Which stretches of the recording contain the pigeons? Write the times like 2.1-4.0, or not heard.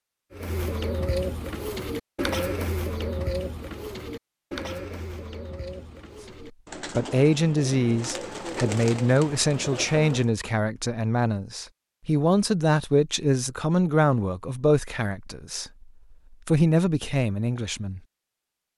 0.3-10.3.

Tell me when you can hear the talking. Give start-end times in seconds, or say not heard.
7.0-15.8, 16.4-18.0.